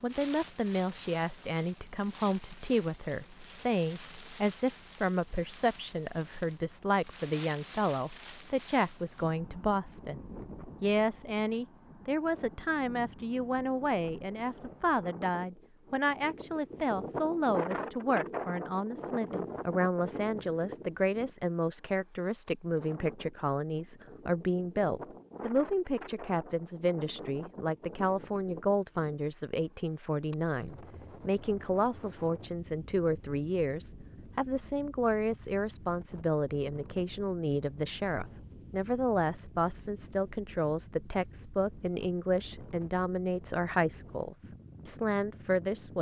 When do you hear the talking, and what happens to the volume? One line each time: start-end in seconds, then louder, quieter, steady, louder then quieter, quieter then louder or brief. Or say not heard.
0.0-45.9 steady.